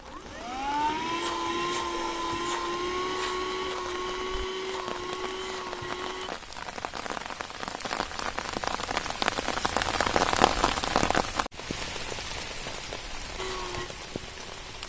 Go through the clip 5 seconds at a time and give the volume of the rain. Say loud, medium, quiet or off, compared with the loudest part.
quiet, loud, loud.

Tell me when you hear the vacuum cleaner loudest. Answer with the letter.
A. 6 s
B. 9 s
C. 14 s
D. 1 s
D.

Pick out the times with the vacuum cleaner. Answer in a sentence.
You can hear the vacuum cleaner from 0.0 to 6.3 s and from 13.3 to 14.8 s.